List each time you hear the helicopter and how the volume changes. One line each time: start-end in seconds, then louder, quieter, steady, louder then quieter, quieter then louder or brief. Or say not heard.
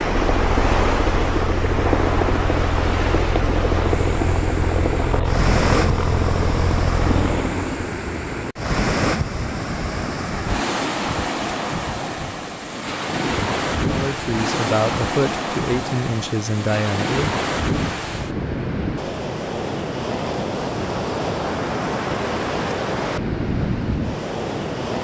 0.0-7.9 steady.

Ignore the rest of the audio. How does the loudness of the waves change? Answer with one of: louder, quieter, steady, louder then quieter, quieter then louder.
steady.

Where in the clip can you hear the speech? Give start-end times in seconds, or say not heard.
13.8-17.4.